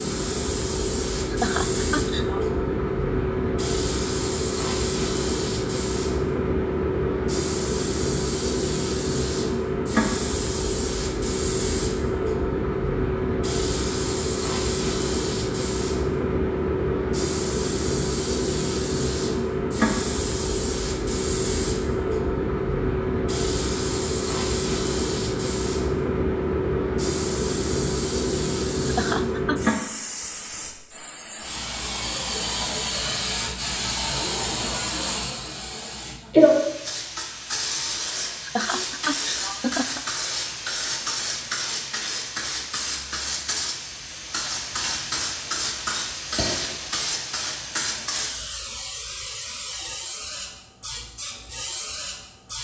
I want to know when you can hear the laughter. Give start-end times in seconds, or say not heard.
1.3-2.5, 28.9-29.8, 38.4-40.0.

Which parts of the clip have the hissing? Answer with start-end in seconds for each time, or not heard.
0.0-52.5.